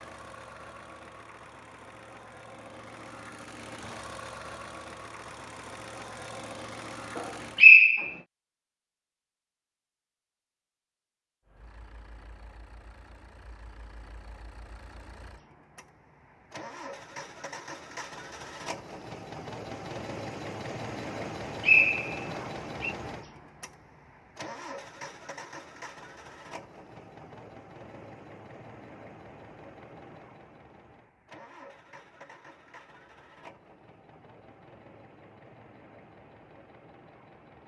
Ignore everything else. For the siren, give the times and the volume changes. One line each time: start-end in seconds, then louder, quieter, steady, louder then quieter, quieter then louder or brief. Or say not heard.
not heard.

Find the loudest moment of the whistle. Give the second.
8 s.